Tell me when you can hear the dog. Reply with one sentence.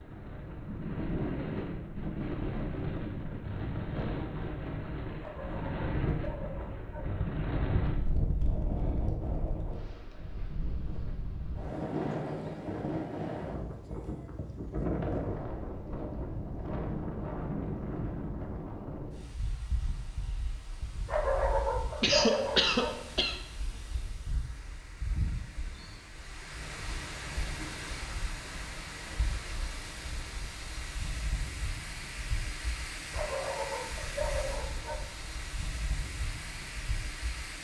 The dog can be heard from 5.2 to 7.1 s, from 21.1 to 22.9 s and from 33.1 to 35.0 s.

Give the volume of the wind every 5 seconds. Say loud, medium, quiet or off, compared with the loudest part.
loud, loud, loud, loud, quiet, medium, medium, medium.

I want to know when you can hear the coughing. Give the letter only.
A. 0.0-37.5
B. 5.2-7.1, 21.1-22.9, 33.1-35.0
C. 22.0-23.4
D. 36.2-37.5
C.